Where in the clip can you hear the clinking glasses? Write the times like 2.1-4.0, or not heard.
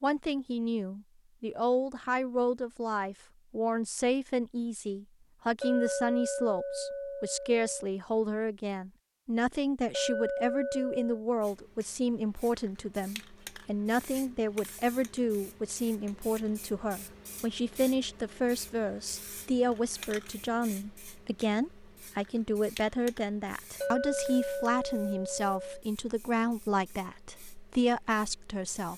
5.6-7.8, 9.9-11.2, 23.8-25.8.